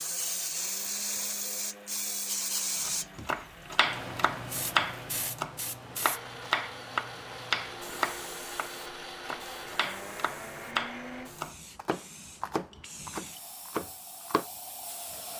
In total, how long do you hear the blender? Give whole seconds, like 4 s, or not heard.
11 s.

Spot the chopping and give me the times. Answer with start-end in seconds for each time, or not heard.
2.9-14.4.